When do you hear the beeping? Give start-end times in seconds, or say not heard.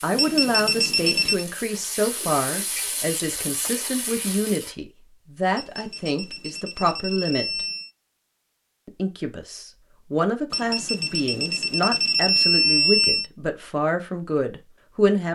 0.1-1.4, 5.5-7.9, 10.5-13.3.